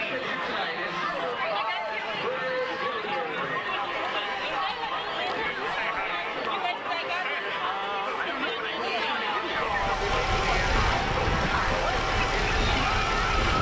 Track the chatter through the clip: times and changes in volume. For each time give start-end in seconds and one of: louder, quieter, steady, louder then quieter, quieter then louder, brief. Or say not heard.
0.0-13.5 steady.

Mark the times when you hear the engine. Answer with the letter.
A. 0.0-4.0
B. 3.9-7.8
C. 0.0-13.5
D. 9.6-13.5
D.